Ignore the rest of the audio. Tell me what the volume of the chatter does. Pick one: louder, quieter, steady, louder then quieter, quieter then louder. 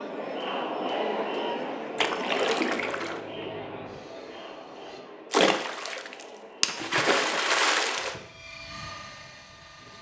quieter.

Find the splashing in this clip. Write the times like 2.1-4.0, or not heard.
1.9-3.2, 5.3-8.2.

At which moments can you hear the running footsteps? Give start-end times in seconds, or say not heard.
not heard.